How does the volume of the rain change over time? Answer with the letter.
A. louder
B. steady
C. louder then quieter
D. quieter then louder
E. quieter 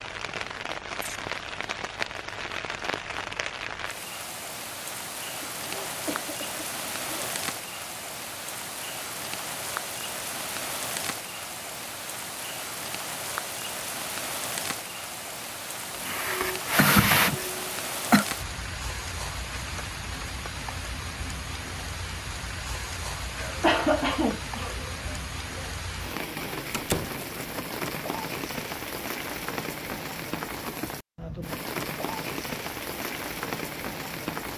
B.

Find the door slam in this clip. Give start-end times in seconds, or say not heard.
26.7-27.2.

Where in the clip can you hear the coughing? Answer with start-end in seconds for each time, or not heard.
5.4-7.1, 15.9-18.2, 23.4-25.7.